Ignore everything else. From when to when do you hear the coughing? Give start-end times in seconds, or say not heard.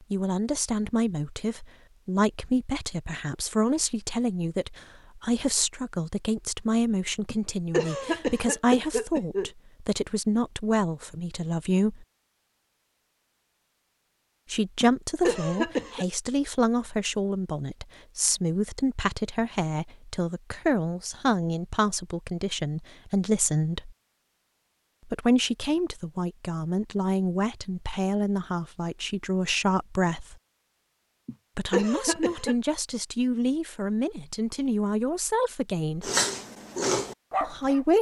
7.3-9.5, 14.8-16.1, 31.2-32.5.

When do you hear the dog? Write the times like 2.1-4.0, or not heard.
36.0-37.9.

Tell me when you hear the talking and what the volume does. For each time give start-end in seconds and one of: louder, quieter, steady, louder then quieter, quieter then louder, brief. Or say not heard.
0.1-12.1 steady
14.5-23.9 steady
25.1-30.4 steady
31.6-36.1 steady
37.4-37.9 brief.